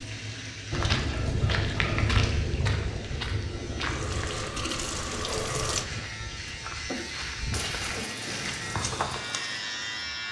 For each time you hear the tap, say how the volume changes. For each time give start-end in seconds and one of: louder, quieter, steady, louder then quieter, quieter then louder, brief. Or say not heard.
0.0-10.2 louder then quieter.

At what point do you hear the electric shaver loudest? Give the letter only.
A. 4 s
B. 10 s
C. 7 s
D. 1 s
B.